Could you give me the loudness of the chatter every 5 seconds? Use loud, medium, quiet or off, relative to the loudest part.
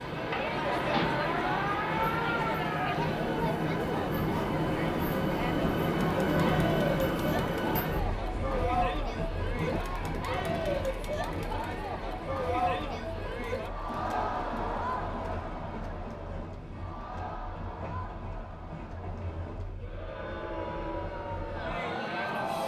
loud, loud, loud, medium, loud.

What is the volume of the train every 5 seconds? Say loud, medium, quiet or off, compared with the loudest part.
loud, loud, quiet, quiet, quiet.